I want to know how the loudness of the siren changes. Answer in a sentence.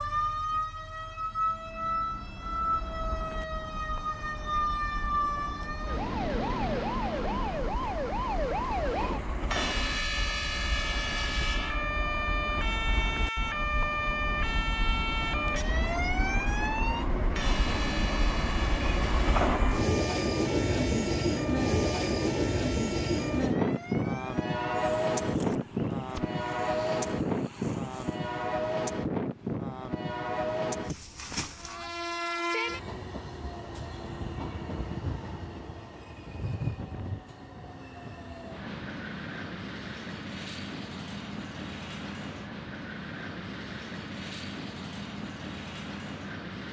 The loudness of the siren goes down.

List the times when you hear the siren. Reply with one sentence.
The siren can be heard from 0.0 to 28.4 s.